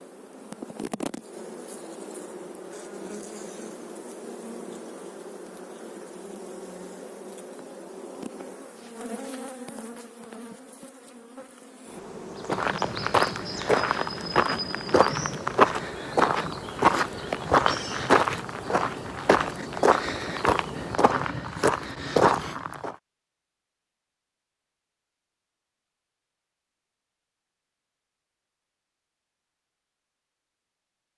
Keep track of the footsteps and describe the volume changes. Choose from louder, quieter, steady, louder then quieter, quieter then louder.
steady.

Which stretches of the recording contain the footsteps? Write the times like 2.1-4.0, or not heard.
12.4-22.9.